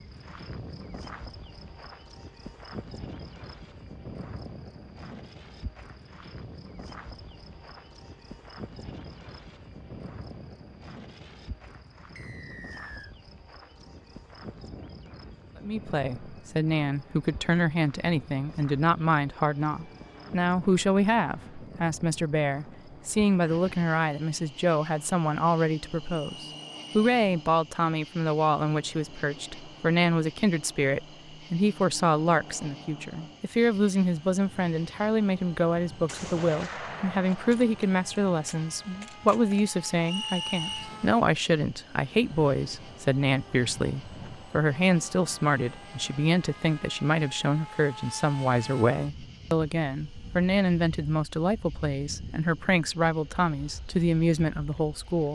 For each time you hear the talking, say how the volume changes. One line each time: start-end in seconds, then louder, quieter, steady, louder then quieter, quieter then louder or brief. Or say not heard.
15.6-55.3 steady.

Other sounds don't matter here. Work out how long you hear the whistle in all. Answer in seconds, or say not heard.
3 s.